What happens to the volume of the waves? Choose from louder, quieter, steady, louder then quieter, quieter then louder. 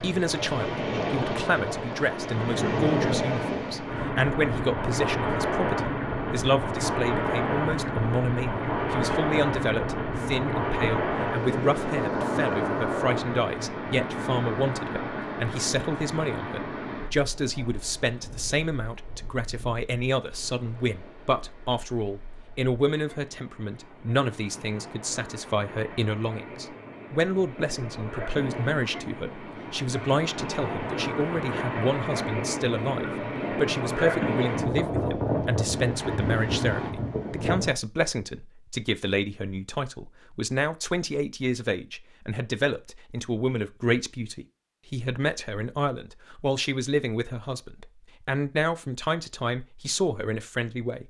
quieter then louder.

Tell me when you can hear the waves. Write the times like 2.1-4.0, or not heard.
0.0-37.8.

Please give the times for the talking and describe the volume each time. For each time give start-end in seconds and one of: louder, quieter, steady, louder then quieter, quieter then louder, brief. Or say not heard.
0.0-51.0 steady.